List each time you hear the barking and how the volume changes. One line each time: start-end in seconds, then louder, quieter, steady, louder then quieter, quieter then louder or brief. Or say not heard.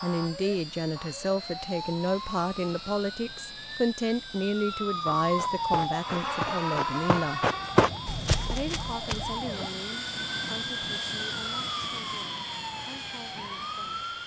not heard.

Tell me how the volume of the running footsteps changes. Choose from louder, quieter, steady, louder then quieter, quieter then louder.
louder then quieter.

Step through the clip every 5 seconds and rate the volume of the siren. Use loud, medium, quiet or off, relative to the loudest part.
medium, loud, medium.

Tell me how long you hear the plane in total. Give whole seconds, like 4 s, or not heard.
14 s.